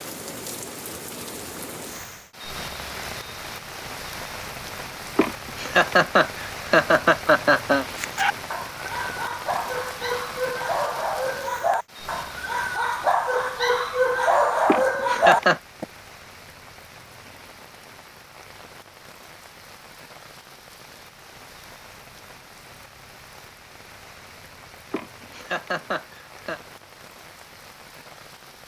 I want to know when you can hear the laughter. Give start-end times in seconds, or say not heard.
5.2-7.8, 14.7-15.6, 24.9-26.6.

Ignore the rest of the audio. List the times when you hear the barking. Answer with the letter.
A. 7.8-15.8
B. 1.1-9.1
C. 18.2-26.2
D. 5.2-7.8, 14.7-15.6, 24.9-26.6
A.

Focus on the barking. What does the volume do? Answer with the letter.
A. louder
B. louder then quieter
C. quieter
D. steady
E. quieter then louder
A.